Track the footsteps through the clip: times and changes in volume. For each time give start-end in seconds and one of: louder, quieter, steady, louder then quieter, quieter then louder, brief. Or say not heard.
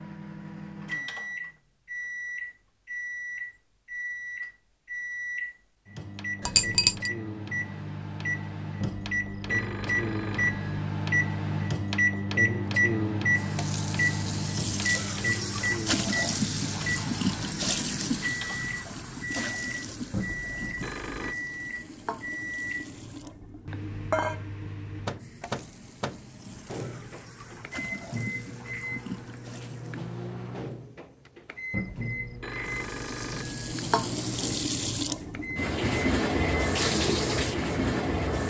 not heard.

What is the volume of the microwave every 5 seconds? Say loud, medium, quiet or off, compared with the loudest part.
medium, medium, loud, medium, medium, medium, medium, medium.